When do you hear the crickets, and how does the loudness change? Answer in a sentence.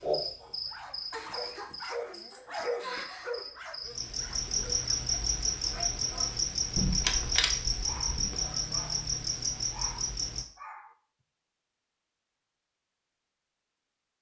You can hear the crickets from 0.0 to 10.4 s, getting louder.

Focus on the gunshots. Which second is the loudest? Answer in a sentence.
The loudest moment of the gunshots is at 7 seconds.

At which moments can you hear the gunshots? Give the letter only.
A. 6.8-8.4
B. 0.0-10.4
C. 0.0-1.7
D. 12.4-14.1
A.